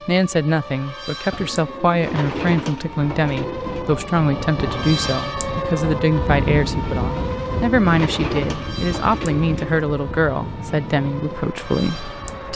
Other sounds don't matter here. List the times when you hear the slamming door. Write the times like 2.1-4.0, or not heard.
not heard.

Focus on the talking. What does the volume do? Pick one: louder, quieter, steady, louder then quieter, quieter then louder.
steady.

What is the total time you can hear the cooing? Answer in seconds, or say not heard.
5 s.